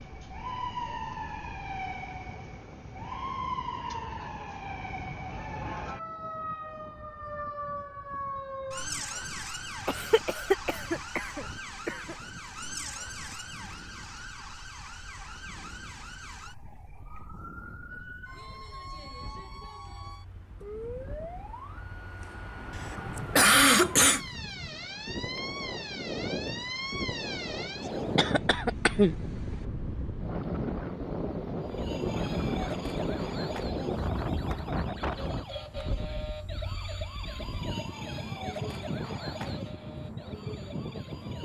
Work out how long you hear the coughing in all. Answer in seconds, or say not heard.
5 s.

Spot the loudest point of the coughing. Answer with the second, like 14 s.
24 s.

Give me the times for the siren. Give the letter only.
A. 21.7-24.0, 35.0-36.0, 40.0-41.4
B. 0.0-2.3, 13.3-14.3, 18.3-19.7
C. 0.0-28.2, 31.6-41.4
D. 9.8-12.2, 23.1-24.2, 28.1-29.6
C.